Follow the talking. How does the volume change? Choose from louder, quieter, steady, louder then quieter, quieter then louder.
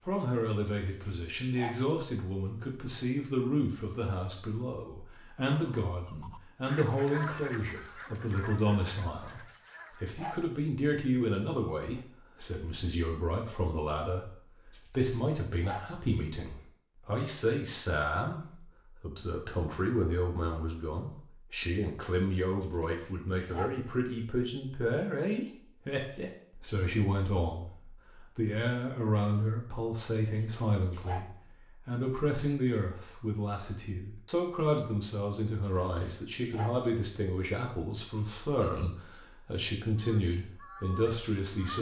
steady.